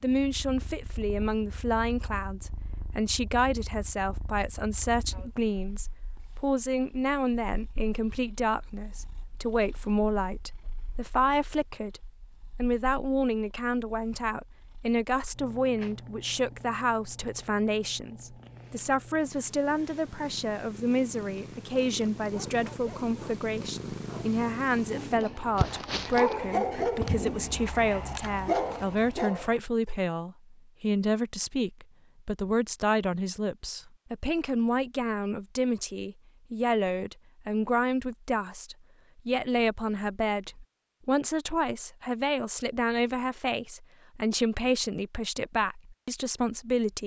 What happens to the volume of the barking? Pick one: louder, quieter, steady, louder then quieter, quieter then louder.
louder.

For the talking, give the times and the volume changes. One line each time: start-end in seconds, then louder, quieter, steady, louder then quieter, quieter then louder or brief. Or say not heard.
0.0-47.0 steady.